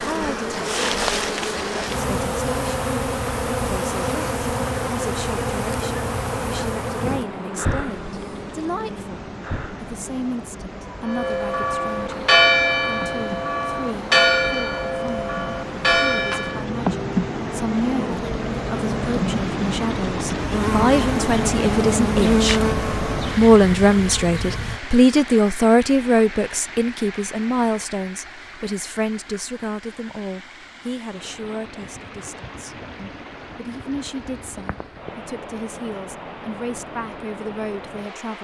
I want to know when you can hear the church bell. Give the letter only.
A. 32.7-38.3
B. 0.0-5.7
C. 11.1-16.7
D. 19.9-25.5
C.